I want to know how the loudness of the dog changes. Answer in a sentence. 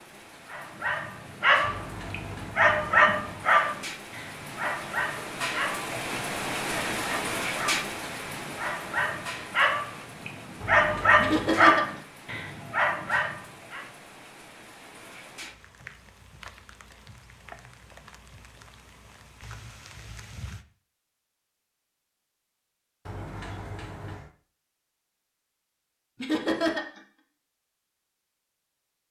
The loudness of the dog goes down, then up.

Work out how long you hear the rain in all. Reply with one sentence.
The rain can be heard for 21 seconds in total.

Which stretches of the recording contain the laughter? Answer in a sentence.
The laughter can be heard from 11.2 to 12.0 s and from 26.2 to 27.0 s.